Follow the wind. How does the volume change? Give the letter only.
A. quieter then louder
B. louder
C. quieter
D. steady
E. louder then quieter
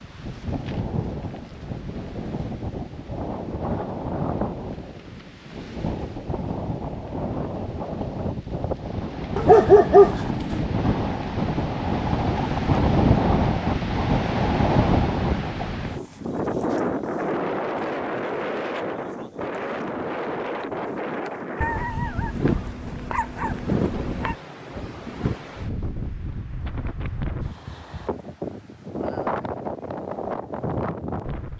E.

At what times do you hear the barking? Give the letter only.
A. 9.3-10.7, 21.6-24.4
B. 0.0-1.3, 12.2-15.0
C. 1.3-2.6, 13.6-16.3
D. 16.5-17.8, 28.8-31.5
A.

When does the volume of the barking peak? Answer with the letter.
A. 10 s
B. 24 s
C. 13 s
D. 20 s
A.